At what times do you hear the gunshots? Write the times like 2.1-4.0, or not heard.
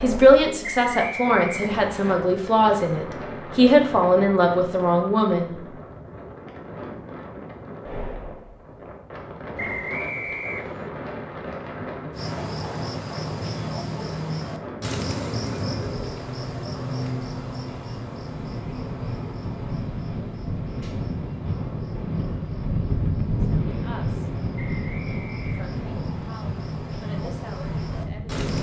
not heard.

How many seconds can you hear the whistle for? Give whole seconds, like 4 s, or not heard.
4 s.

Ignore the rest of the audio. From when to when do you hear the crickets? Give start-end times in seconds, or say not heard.
12.1-28.5.